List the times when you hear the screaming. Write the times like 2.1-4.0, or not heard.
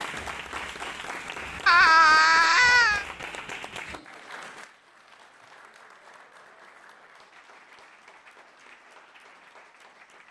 1.6-3.0.